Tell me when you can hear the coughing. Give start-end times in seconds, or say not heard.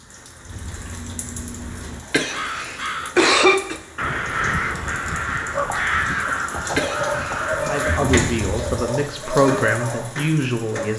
2.1-3.8, 6.8-7.5.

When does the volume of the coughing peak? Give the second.
3 s.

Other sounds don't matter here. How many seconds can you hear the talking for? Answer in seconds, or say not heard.
3 s.